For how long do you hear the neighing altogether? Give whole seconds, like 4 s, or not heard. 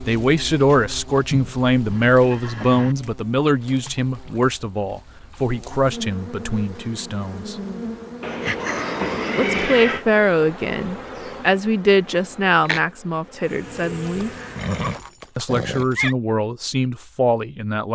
6 s.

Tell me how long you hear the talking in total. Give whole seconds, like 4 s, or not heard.
15 s.